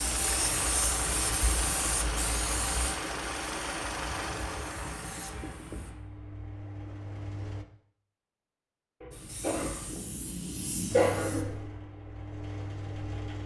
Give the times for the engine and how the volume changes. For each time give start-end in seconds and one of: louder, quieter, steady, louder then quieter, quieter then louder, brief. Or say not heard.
0.0-7.7 quieter
10.8-13.4 brief.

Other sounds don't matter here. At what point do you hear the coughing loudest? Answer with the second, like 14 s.
11 s.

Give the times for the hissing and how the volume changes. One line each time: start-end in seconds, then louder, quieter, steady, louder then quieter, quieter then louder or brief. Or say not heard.
0.0-6.0 quieter
9.1-11.4 brief.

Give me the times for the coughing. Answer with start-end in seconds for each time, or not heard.
9.0-11.6.